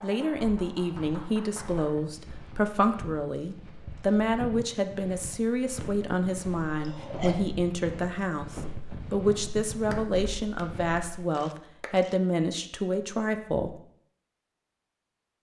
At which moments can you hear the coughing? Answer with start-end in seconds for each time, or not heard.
6.4-7.3.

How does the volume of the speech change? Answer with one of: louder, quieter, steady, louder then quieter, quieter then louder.
steady.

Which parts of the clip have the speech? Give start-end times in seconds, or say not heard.
0.0-13.8.